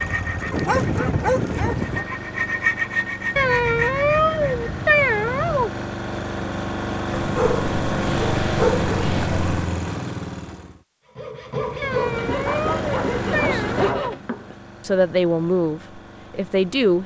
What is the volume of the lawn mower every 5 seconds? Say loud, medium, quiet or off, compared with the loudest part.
medium, loud, medium, quiet.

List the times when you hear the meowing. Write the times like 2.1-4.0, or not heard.
3.4-5.7, 11.8-14.2.